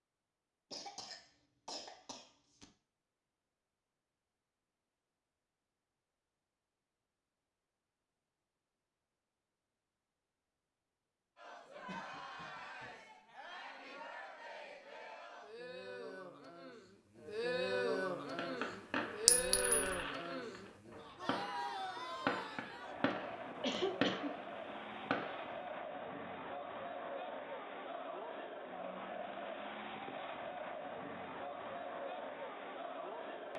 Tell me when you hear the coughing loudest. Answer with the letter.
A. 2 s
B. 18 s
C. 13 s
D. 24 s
D.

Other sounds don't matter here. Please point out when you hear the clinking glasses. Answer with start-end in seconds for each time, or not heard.
19.2-19.9.